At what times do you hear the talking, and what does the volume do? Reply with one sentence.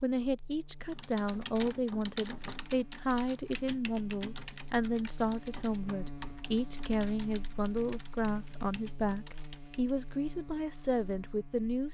You can hear the talking from 0.0 to 11.8 s, at a steady volume.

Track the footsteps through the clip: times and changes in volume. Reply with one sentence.
The footsteps can't be heard in this clip.